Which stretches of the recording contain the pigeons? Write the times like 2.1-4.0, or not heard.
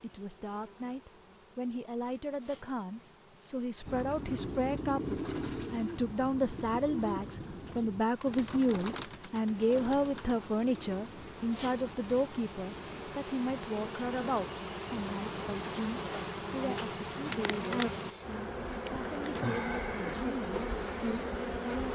3.9-13.2.